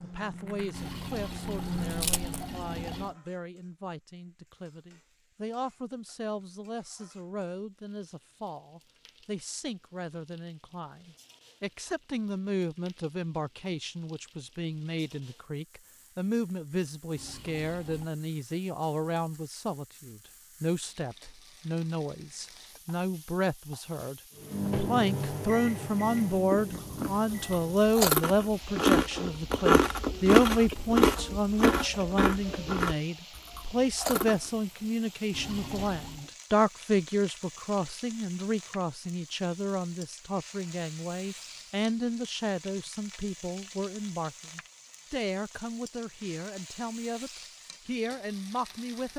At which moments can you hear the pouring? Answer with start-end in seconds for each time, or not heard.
0.7-3.1, 17.1-18.1, 35.3-36.2.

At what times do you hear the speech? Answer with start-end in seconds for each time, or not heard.
0.0-49.1.